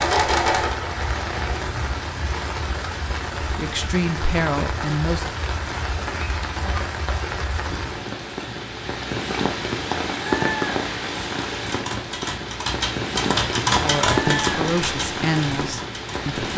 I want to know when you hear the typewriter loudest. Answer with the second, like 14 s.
14 s.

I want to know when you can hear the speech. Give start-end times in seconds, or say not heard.
3.4-5.2, 13.8-16.4.